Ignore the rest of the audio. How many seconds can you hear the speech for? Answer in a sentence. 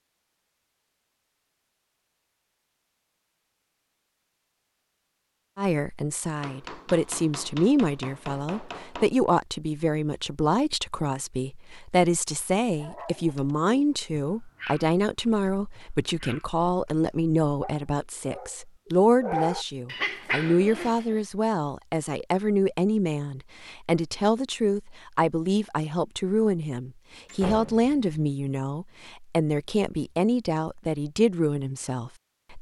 The speech can be heard for 27 seconds in total.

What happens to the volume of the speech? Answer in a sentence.
The loudness of the speech stays about the same.